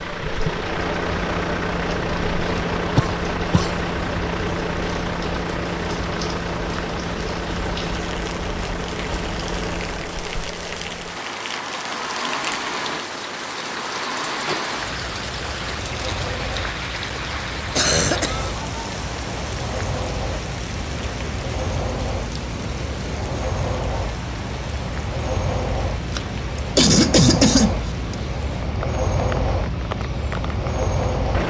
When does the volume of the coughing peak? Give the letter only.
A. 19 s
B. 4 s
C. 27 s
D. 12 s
C.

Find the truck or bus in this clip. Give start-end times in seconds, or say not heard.
0.0-31.4.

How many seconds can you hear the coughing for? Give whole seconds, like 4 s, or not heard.
4 s.